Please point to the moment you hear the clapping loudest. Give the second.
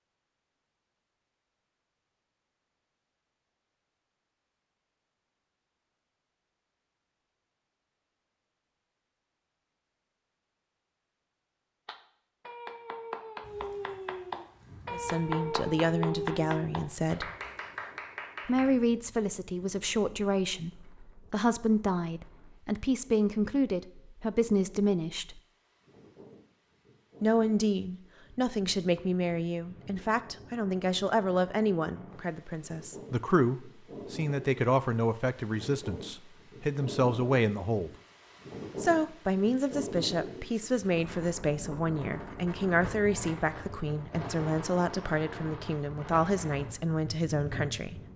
16 s.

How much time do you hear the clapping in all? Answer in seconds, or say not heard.
7 s.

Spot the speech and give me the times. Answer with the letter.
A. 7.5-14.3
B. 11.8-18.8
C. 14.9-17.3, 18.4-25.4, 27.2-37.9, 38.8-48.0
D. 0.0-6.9
C.